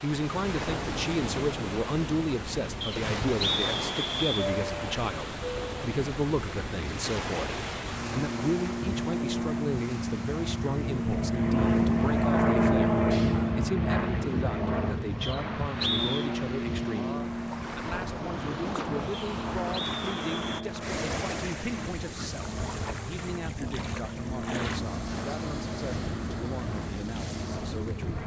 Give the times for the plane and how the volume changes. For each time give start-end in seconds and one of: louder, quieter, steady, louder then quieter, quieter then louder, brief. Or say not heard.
0.2-28.2 louder then quieter.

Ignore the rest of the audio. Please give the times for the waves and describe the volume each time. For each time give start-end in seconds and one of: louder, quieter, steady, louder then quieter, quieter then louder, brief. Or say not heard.
0.0-28.2 quieter then louder.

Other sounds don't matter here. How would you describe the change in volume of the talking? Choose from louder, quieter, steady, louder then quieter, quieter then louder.
quieter.